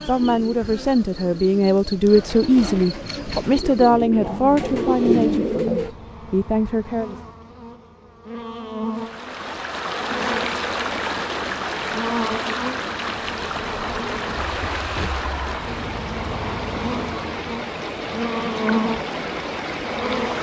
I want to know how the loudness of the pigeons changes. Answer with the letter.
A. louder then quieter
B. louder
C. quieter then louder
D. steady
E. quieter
B.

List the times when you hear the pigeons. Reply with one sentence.
You can hear the pigeons from 0.1 to 5.9 s.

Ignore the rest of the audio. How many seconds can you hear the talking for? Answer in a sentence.
You can hear the talking for 7 seconds altogether.